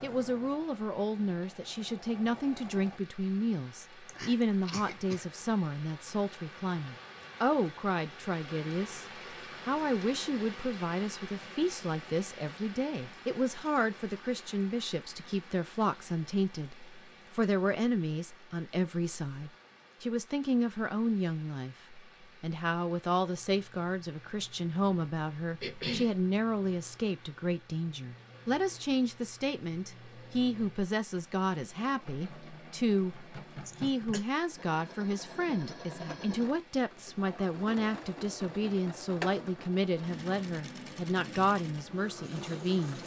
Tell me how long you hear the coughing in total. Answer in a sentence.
You can hear the coughing for 2 seconds altogether.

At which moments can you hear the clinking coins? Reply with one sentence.
You can't hear the clinking coins here.